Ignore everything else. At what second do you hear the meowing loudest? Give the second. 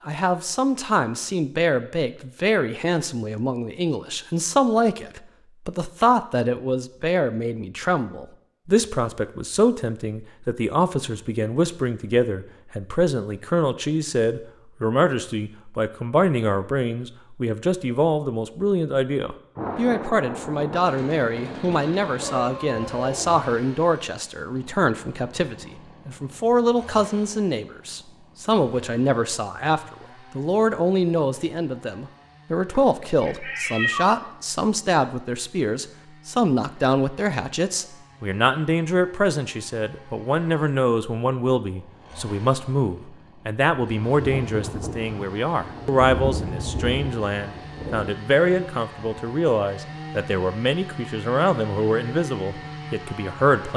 34 s.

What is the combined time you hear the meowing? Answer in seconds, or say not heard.
3 s.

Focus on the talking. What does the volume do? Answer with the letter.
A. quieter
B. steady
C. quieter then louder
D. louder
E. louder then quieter
B.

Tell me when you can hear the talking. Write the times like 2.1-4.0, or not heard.
0.1-53.7.